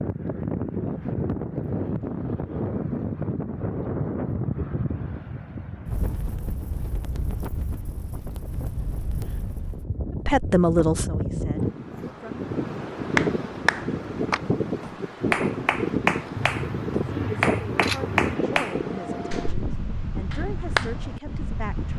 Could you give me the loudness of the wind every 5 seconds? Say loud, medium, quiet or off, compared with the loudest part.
loud, medium, loud, loud, medium.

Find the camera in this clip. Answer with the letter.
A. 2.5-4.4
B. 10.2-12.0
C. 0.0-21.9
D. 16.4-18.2
D.